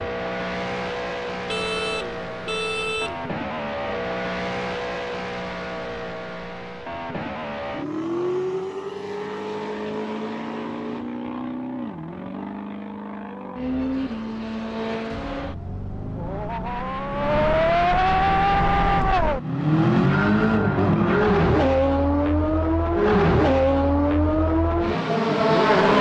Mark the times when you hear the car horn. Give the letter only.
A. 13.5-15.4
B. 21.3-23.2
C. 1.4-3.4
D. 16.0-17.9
C.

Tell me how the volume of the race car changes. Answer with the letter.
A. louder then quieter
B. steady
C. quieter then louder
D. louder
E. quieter
D.